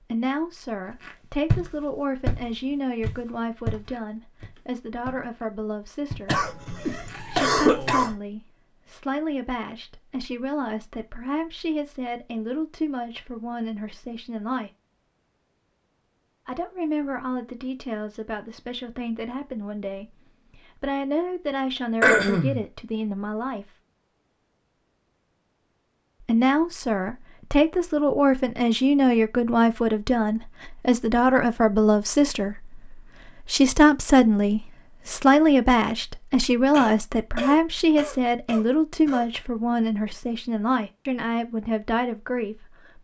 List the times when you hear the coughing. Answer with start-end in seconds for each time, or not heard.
6.2-8.2, 22.0-22.6, 36.7-39.2.